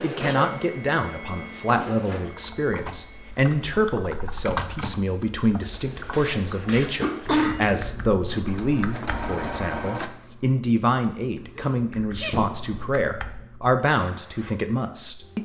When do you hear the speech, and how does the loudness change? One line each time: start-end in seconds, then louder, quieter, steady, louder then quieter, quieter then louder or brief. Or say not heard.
0.0-15.3 steady.